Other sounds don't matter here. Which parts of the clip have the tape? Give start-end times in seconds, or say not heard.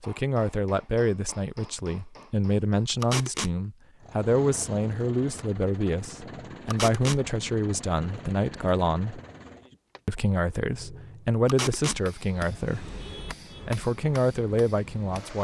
3.0-3.5, 6.7-7.2, 11.4-12.0.